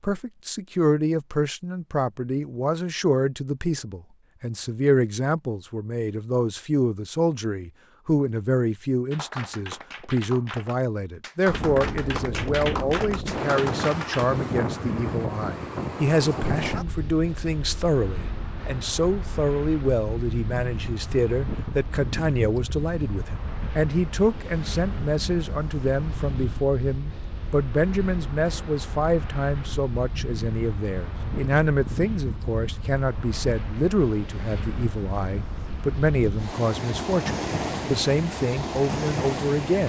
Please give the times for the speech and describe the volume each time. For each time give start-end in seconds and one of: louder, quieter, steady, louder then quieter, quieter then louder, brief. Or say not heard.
0.0-39.8 steady.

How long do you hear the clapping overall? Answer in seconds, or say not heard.
5 s.